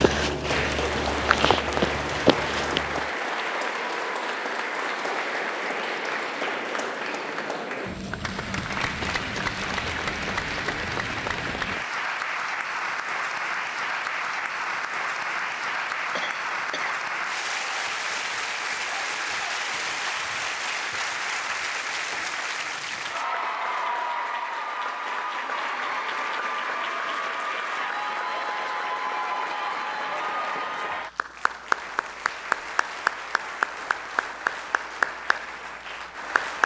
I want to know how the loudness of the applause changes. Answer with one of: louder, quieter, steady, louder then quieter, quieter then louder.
steady.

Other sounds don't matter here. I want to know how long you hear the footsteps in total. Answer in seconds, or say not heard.
3 s.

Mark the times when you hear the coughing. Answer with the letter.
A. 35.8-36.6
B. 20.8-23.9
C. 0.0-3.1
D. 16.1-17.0
D.